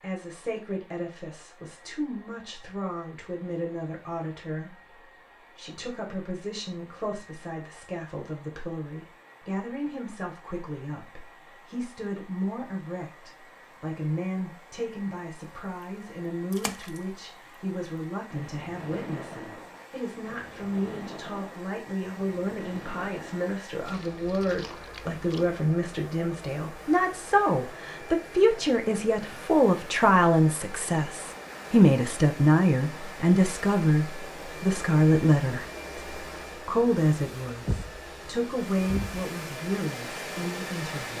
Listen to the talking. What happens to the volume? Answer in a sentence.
The loudness of the talking goes up.